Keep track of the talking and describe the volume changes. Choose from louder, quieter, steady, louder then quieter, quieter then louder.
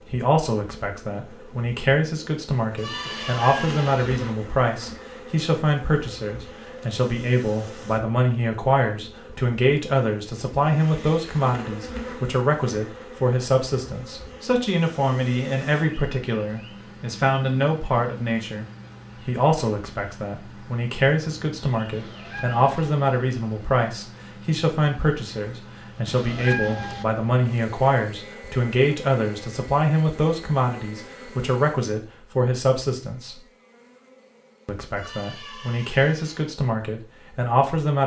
steady.